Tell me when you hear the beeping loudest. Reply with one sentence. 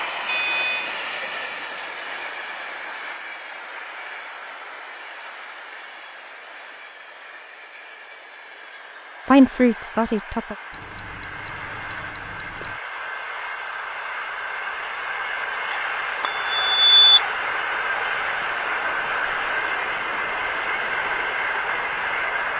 The volume of the beeping peaks at 17 seconds.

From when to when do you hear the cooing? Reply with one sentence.
You can't hear the cooing here.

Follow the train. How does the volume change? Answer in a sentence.
The volume of the train goes down, then up.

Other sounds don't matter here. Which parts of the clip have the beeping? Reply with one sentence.
You can hear the beeping from 0.2 to 0.9 s, from 10.7 to 12.8 s and from 16.2 to 17.2 s.